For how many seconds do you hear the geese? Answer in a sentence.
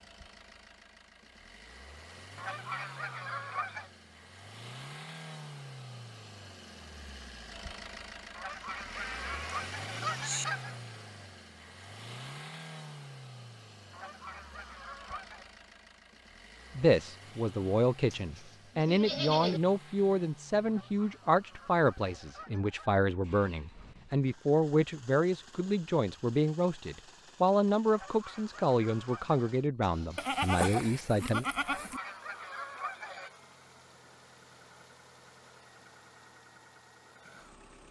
You can hear the geese for 11 seconds altogether.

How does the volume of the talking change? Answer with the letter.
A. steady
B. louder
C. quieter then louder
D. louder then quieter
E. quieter
A.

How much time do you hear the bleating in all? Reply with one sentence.
You can hear the bleating for 5 seconds altogether.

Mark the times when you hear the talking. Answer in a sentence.
You can hear the talking from 16.8 to 31.4 s.